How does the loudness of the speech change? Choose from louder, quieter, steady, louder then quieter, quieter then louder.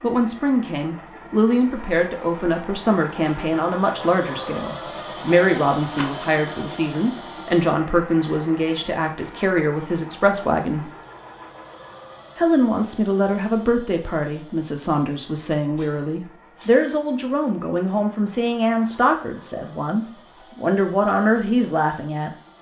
steady.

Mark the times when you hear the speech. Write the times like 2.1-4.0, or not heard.
0.0-10.9, 12.3-22.3.